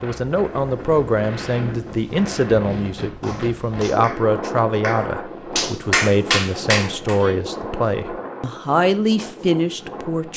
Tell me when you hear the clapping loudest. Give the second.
6 s.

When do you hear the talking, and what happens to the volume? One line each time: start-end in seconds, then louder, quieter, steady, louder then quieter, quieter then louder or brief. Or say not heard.
0.0-10.3 steady.